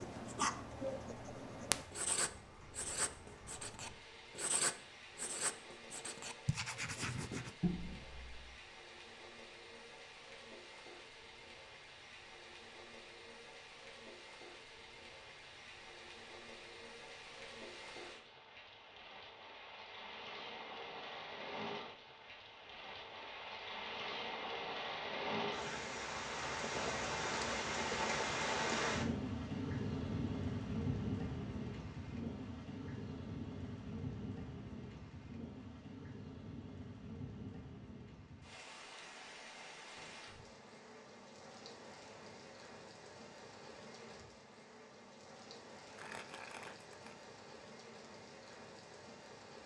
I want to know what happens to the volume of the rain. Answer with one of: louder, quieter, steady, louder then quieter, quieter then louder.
louder then quieter.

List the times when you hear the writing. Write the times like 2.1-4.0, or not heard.
0.0-8.6.